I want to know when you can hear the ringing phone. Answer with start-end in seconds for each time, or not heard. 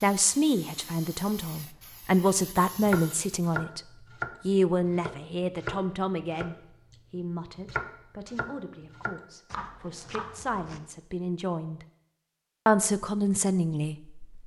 not heard.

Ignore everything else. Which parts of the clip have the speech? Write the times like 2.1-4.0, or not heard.
0.0-3.8, 4.5-11.8, 12.7-14.4.